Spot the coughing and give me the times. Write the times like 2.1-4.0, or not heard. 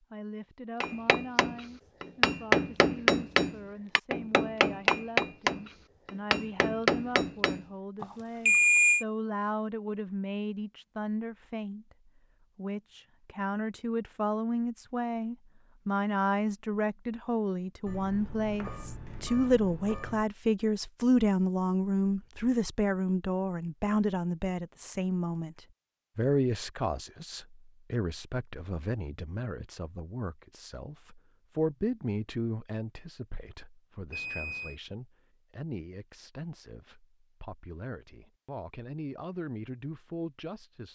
not heard.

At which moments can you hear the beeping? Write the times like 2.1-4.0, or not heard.
8.0-9.1, 17.9-20.2, 34.1-34.8.